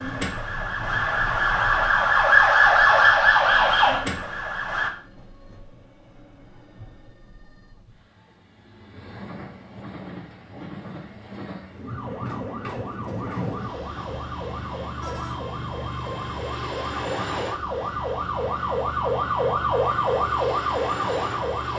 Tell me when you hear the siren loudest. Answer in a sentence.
The loudest moment of the siren is at 3 seconds.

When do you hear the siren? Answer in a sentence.
You can hear the siren from 0.0 to 4.9 s and from 11.8 to 21.7 s.